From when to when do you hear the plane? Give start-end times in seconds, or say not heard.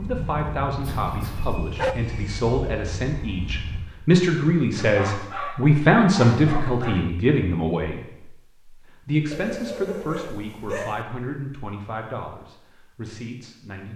0.0-3.8.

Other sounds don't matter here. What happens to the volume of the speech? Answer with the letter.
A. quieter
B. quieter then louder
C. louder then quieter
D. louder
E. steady
C.